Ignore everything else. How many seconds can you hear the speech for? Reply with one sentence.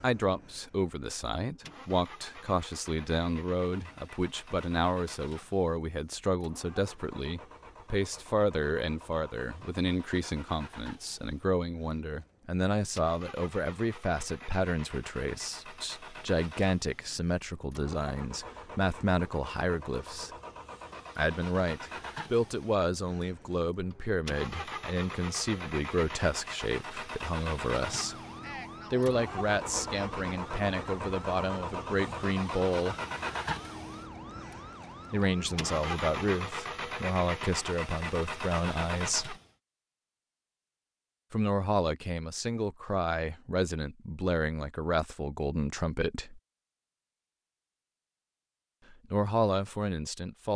You can hear the speech for 42 seconds altogether.